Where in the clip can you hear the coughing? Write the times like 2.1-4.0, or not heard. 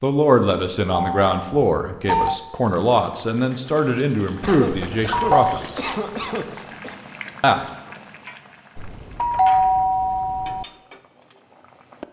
4.4-7.0.